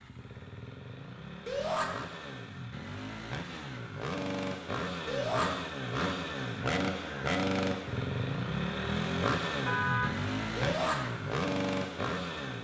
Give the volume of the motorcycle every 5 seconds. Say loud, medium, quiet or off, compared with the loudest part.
medium, loud, loud.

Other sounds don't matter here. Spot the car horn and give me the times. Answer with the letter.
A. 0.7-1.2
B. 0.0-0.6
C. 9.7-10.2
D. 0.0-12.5
C.